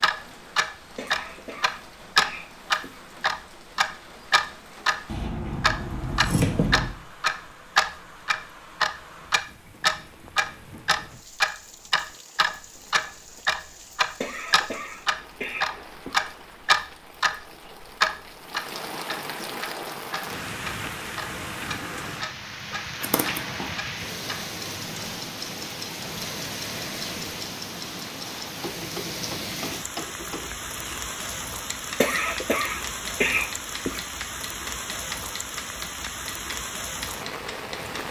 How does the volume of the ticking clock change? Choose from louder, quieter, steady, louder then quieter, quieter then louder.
quieter.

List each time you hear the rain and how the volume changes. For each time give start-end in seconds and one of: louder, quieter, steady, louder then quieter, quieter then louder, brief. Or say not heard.
0.0-38.0 louder.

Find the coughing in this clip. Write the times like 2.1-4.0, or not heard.
0.9-3.0, 14.2-16.2, 32.0-34.0.